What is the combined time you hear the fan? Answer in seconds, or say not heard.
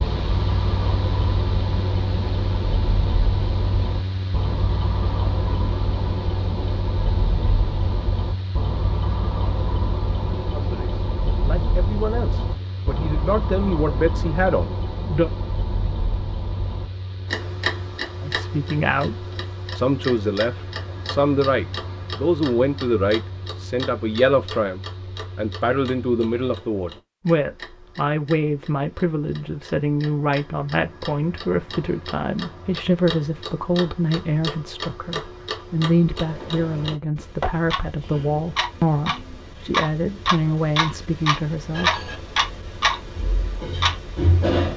26 s.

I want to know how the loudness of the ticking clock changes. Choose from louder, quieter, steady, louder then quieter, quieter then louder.
quieter then louder.